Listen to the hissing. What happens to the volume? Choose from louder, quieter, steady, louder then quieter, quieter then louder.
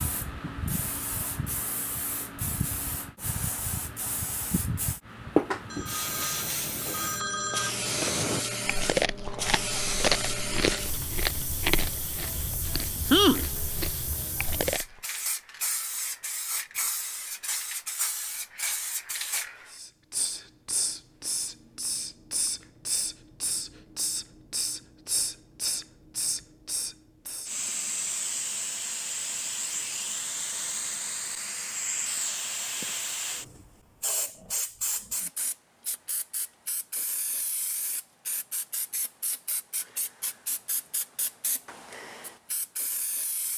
quieter.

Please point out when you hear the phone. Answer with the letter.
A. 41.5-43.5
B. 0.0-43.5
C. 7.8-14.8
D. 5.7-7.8
D.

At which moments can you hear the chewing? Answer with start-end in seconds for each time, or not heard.
7.8-14.8.